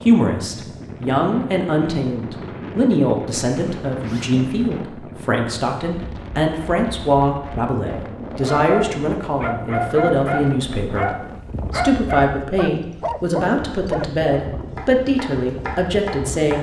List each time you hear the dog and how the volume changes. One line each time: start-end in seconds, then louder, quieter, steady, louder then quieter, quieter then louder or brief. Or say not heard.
8.4-14.3 steady.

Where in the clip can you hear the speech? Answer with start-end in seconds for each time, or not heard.
0.1-11.1, 11.7-16.5.